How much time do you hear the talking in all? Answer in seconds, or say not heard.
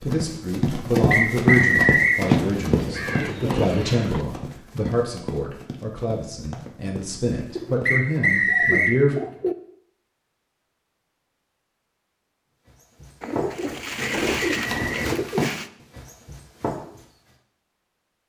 9 s.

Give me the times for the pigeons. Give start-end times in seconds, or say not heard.
2.2-4.2, 7.5-9.6, 13.2-15.7.